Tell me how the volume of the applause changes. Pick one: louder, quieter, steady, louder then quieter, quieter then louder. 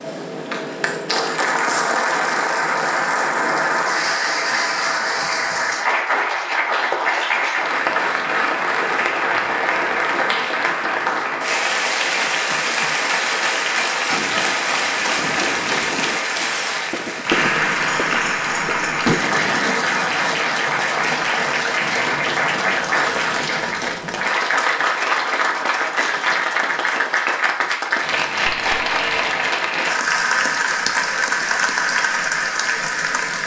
steady.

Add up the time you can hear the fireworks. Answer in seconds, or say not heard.
6 s.